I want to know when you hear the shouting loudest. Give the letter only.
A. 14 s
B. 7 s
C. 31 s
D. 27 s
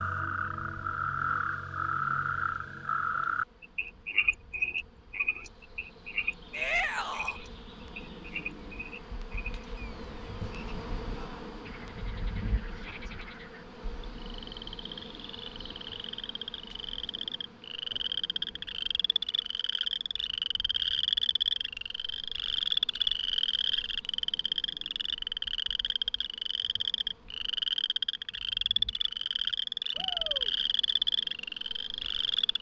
B.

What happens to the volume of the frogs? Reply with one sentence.
The loudness of the frogs goes down, then up.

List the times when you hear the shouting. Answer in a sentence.
You can hear the shouting from 6.5 to 7.4 s, from 12.7 to 13.2 s and from 29.9 to 30.6 s.